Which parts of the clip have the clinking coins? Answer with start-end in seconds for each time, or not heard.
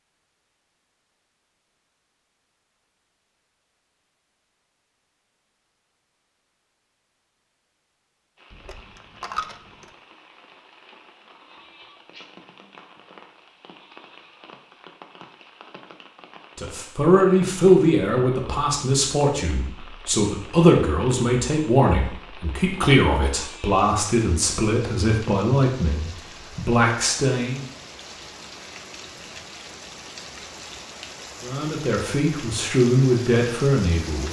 8.5-9.9.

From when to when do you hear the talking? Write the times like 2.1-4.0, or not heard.
16.6-27.6, 31.4-34.2.